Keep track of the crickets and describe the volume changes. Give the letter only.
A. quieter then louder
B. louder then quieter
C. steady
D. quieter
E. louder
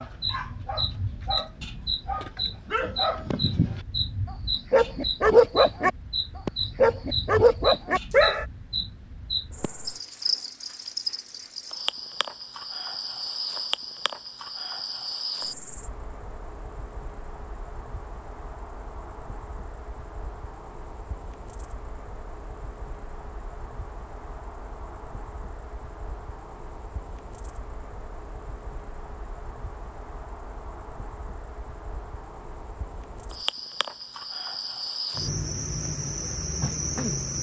A.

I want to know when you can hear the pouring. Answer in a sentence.
You can't hear the pouring here.